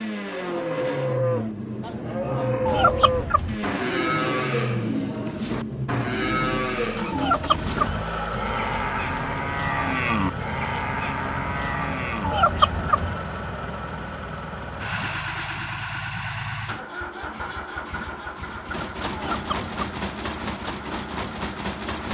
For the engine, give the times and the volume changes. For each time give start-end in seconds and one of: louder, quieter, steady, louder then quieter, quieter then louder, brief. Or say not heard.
0.0-22.0 steady.